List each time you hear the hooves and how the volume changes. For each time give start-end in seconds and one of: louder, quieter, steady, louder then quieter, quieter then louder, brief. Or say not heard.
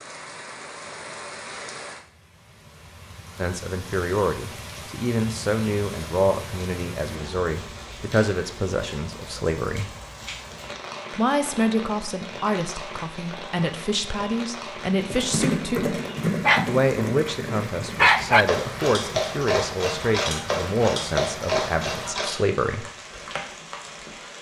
15.0-22.4 quieter then louder.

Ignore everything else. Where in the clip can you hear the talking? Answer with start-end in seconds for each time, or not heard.
3.4-9.9, 11.1-15.9, 16.6-22.9.